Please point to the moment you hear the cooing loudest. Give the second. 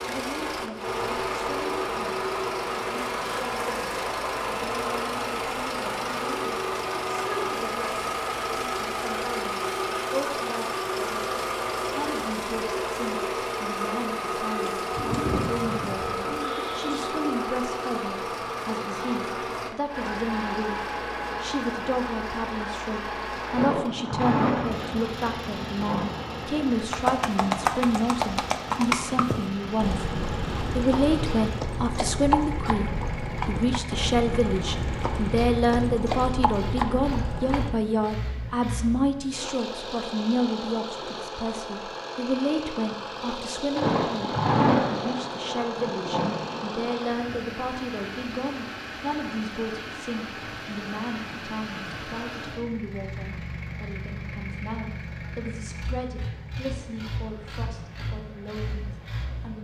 15 s.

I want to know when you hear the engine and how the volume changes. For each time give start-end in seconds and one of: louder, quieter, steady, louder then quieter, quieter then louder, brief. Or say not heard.
0.0-59.5 quieter.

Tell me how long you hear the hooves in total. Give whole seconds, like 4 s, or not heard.
11 s.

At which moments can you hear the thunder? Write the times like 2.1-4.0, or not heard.
23.5-26.9, 43.8-46.9.